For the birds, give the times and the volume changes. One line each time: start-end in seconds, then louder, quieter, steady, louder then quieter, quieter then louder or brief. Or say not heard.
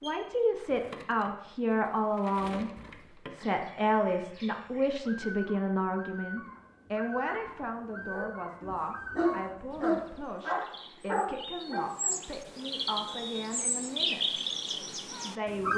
0.0-15.7 louder.